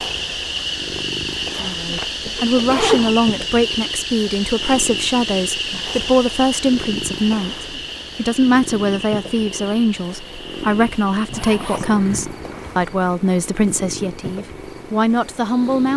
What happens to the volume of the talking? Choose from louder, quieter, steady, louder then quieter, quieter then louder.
steady.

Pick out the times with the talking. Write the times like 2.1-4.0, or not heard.
1.6-15.9.